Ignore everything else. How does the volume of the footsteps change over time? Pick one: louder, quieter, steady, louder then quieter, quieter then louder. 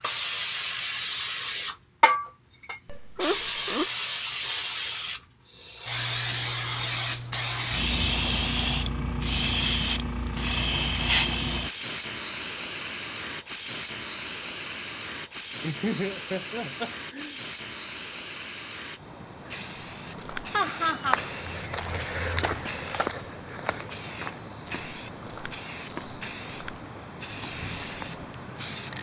quieter.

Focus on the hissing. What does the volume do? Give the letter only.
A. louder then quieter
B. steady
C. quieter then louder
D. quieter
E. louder
D.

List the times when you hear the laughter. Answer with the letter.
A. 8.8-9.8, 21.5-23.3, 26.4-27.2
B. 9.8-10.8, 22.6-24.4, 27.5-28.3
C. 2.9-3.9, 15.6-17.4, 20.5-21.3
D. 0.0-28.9
C.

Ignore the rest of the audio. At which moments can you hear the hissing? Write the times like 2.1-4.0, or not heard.
0.0-28.9.